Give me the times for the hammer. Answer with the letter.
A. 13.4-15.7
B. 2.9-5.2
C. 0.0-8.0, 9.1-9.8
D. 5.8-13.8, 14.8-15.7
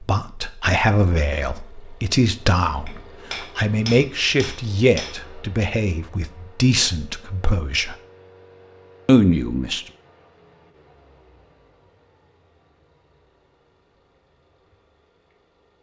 B.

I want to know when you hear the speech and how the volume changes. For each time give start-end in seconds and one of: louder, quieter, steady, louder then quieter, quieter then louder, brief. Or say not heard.
0.0-8.0 steady
9.1-9.8 brief.